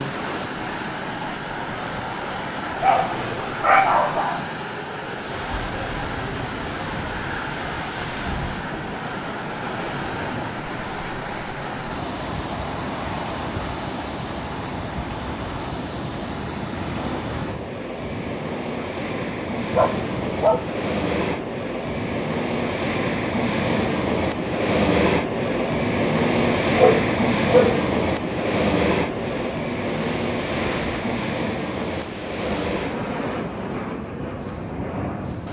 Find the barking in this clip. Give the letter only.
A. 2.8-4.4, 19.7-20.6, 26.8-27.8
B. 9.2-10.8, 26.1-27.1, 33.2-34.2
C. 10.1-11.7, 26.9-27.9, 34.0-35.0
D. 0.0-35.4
A.